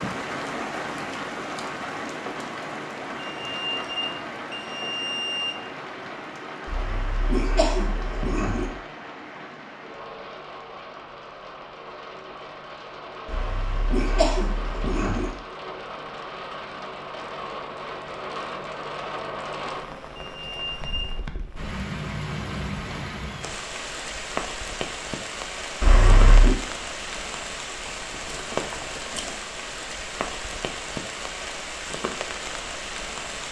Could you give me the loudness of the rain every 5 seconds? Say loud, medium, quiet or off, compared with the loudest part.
loud, medium, medium, loud, loud, loud, loud.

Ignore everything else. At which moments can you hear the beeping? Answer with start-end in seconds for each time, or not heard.
3.1-5.7, 20.1-21.1.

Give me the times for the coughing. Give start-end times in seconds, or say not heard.
6.7-8.7, 13.2-15.3, 25.8-26.6.